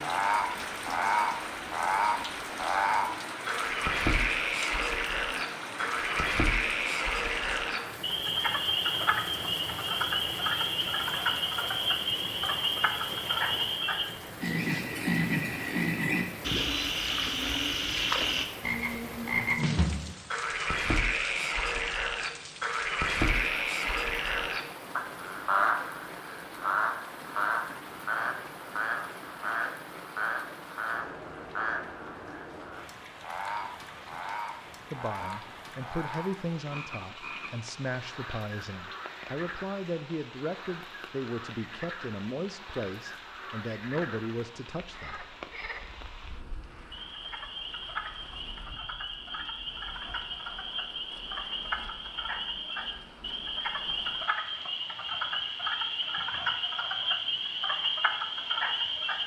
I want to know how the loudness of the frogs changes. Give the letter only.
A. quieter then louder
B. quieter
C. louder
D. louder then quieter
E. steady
A.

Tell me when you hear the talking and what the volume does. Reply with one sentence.
You can hear the talking from 34.9 to 45.2 s, at a steady volume.